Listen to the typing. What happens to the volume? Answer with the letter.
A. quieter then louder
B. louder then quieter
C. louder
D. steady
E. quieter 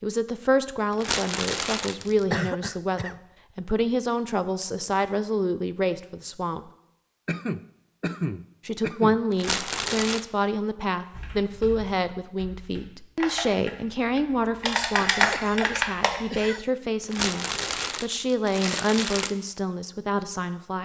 C.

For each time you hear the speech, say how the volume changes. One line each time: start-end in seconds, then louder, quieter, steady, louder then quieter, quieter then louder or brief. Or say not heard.
0.0-6.7 steady
8.7-20.7 steady.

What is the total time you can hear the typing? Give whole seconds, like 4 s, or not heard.
5 s.